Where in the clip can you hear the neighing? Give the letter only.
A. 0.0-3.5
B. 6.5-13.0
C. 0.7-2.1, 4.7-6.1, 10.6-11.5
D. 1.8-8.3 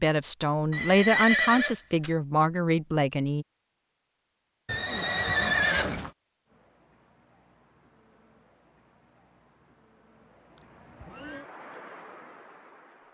C.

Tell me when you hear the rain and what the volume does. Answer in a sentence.
You can hear the rain from 6.5 to 13.0 s, getting louder.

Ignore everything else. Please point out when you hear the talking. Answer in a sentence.
The talking can be heard from 0.0 to 3.5 s.